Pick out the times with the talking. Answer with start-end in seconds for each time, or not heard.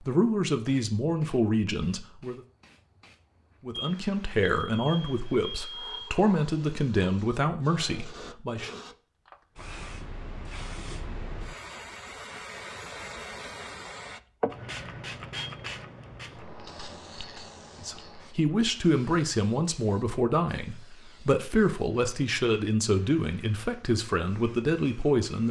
0.1-2.4, 3.6-8.7, 17.8-25.4.